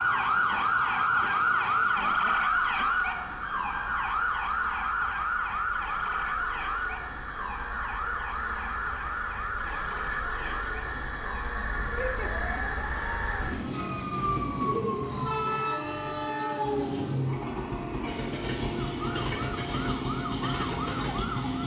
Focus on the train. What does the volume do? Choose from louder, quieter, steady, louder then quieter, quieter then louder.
louder.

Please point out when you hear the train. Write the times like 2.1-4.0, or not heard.
0.0-21.6.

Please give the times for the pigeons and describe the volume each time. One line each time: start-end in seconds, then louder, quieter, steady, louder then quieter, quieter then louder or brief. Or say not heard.
not heard.